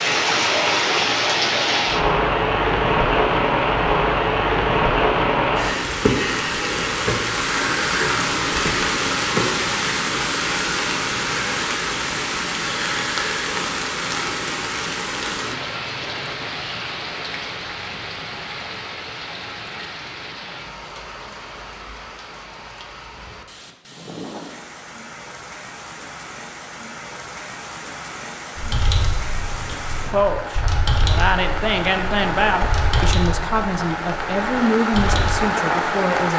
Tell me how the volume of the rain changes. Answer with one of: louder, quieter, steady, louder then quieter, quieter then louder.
quieter then louder.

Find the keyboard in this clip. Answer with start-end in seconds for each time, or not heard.
28.6-35.5.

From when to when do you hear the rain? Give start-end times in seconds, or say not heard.
0.0-36.3.